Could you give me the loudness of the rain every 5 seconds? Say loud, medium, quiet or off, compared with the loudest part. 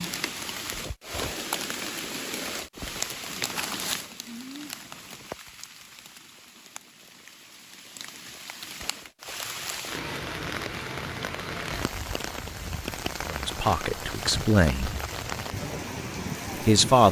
loud, medium, loud, loud.